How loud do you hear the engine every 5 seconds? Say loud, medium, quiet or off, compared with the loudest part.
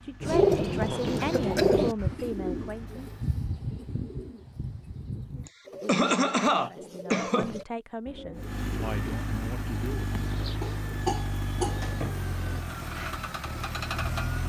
quiet, loud, loud.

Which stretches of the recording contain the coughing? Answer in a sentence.
The coughing can be heard from 1.1 to 1.8 s, from 5.5 to 7.6 s and from 10.6 to 12.6 s.